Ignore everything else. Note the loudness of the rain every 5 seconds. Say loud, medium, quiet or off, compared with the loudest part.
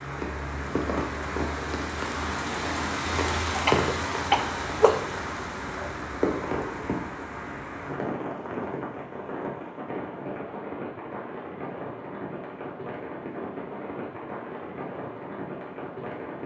loud, loud, medium, medium.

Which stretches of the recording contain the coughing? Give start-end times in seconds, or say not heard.
3.6-5.0.